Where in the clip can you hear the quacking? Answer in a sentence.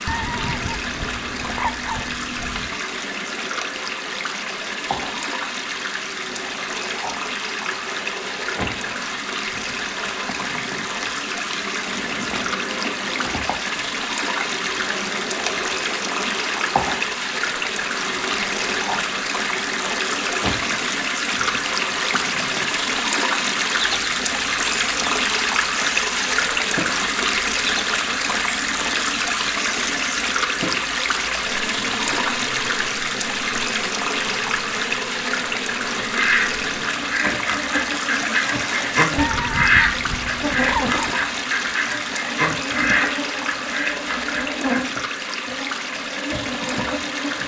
You can hear the quacking from 36.1 to 44.6 s.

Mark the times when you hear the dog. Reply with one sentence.
The dog can be heard from 0.1 to 2.8 s and from 39.1 to 41.0 s.